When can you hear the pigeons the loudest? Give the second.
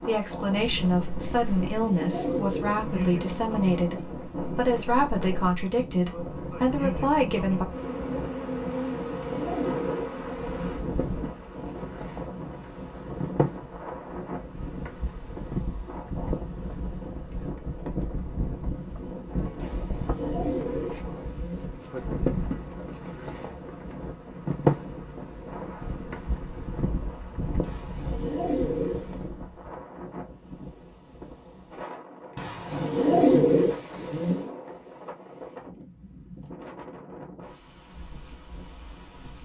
33 s.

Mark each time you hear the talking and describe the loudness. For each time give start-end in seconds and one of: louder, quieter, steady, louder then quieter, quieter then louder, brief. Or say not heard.
0.0-7.7 steady.